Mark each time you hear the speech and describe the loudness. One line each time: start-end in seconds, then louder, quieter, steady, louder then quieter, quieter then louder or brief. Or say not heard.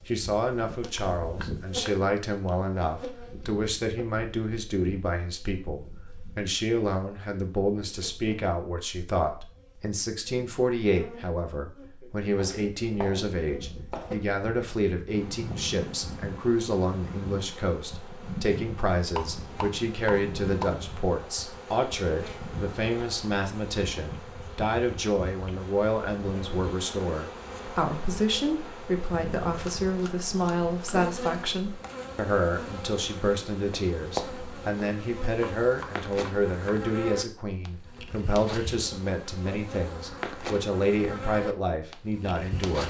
0.1-42.8 steady.